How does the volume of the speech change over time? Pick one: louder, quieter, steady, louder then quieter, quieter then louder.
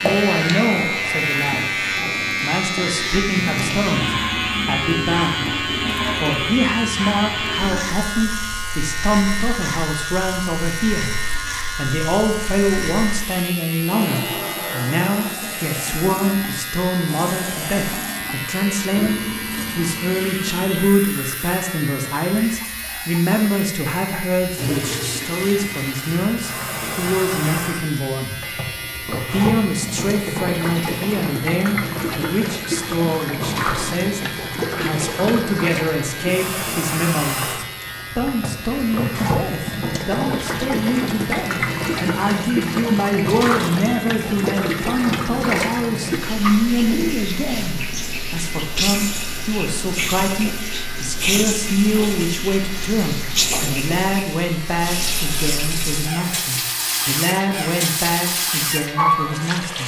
steady.